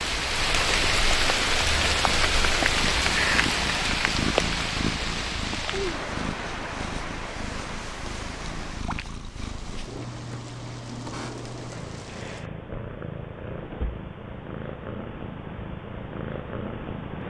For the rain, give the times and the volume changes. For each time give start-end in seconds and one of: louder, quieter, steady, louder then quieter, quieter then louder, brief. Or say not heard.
0.0-12.5 quieter.